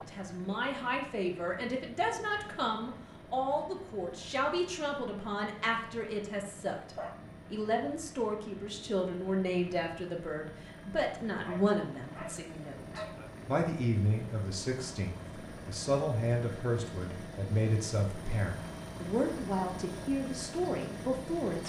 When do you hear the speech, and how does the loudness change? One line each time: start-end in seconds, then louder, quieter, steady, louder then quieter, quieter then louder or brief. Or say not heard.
0.0-21.6 steady.